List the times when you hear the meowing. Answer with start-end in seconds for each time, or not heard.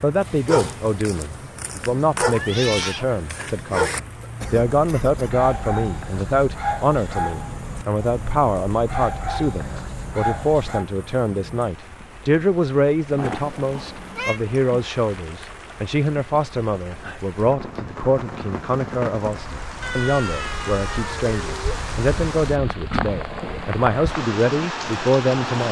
2.2-3.0, 13.2-14.4, 19.8-21.8.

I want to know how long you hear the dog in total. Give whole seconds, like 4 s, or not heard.
11 s.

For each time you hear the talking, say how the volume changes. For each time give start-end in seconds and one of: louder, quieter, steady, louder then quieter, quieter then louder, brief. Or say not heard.
0.0-25.6 steady.